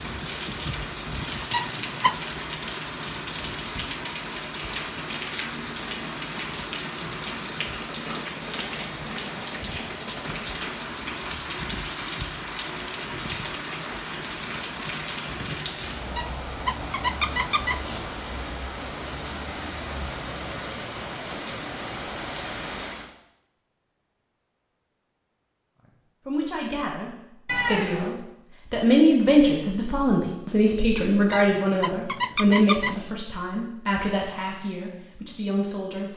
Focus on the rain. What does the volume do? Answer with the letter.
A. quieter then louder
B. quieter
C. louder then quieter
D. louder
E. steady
E.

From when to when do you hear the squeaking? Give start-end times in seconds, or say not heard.
1.5-2.2, 16.1-18.1, 31.3-33.0.